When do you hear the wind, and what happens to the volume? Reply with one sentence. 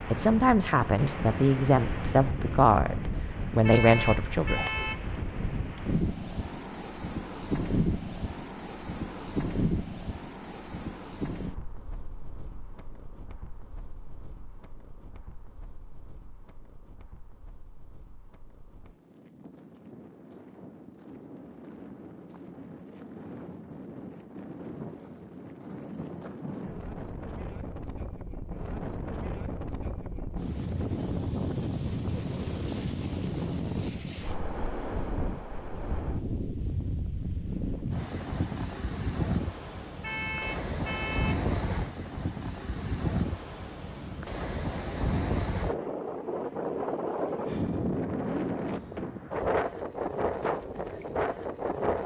The wind can be heard from 0.0 to 52.0 s, getting quieter then louder.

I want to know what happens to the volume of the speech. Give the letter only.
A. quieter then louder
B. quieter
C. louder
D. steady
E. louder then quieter
A.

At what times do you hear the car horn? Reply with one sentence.
The car horn can be heard from 3.6 to 5.0 s and from 40.0 to 41.5 s.